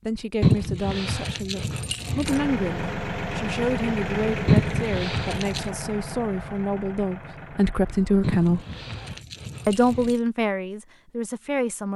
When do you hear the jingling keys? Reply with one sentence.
You can hear the jingling keys from 0.4 to 2.4 s, from 4.5 to 5.7 s and from 8.2 to 10.2 s.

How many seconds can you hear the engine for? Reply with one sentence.
You can hear the engine for 7 seconds altogether.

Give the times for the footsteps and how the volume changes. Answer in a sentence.
The footsteps can't be heard in this clip.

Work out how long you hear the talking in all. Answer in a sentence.
The talking can be heard for 11 seconds in total.